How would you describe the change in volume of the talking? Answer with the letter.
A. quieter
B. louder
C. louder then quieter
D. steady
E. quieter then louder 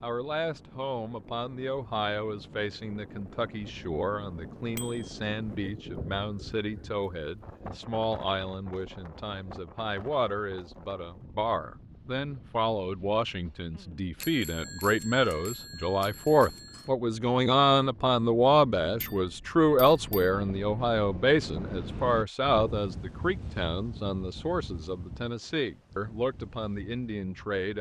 C.